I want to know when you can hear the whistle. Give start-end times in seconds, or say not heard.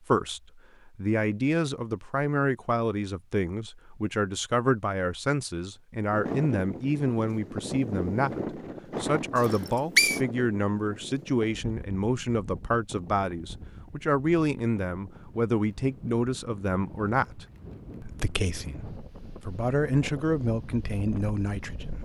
9.4-10.2.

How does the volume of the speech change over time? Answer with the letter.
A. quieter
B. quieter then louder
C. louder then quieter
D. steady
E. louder
D.